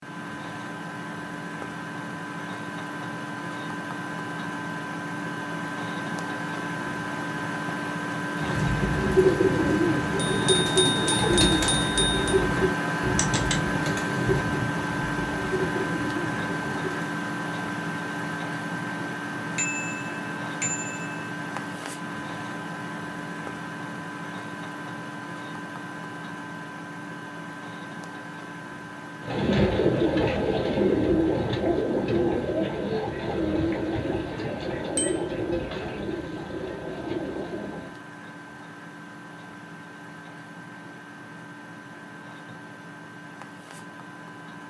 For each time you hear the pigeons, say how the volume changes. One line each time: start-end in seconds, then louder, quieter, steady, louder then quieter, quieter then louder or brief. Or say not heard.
8.3-16.9 quieter
29.2-38.0 quieter.